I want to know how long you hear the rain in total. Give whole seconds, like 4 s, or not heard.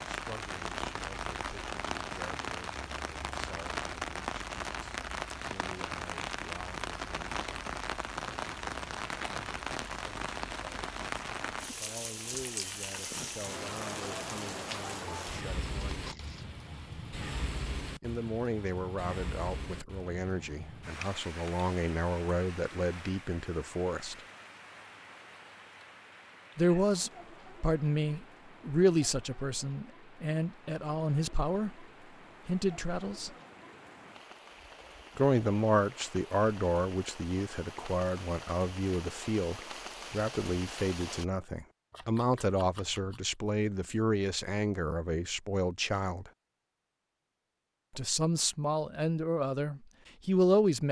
41 s.